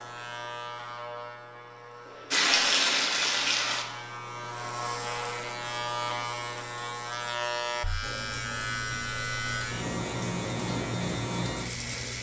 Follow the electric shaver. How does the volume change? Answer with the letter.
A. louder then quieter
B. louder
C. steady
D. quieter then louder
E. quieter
B.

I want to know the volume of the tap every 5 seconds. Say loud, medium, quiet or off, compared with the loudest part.
loud, quiet, quiet.